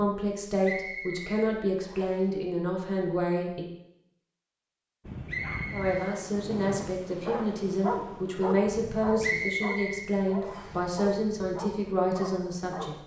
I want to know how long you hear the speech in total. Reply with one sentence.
You can hear the speech for 11 seconds altogether.